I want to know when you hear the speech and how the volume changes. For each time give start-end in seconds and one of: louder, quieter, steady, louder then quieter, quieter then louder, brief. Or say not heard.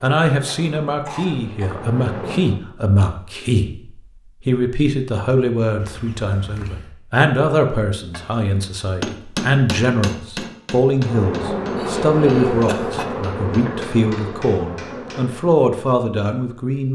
0.0-16.8 steady.